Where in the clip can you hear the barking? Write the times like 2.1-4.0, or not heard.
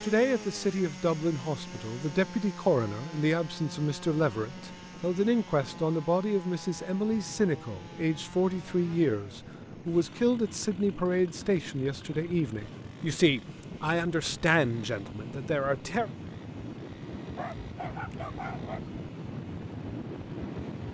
17.4-18.9.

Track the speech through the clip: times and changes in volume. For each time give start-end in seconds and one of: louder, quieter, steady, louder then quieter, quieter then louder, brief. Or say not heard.
0.0-16.1 steady.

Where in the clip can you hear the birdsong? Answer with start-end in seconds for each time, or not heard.
not heard.